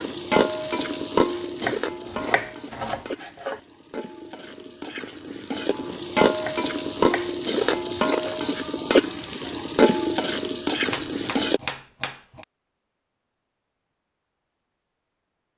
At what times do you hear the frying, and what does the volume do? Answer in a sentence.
You can hear the frying from 0.0 to 11.6 s, getting quieter then louder.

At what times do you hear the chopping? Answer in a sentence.
You can hear the chopping from 1.6 to 3.6 s, from 6.4 to 8.4 s and from 10.8 to 12.4 s.